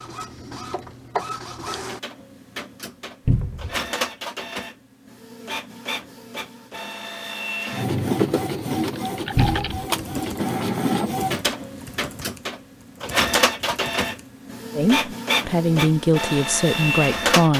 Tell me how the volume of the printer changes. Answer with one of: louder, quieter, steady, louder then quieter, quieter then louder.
louder.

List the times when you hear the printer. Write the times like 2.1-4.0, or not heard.
0.0-17.5.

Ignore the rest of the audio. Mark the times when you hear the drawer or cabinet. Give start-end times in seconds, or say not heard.
3.2-3.8, 9.3-9.8.